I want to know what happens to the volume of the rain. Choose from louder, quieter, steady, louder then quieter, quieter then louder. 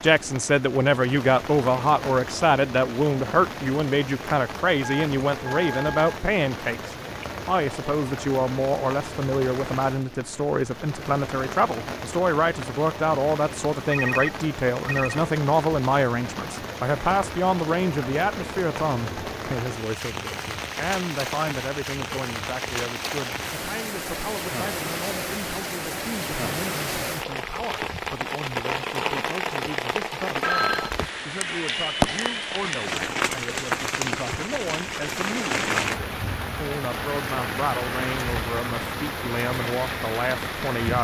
louder.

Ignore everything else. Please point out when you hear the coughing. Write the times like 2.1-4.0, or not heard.
not heard.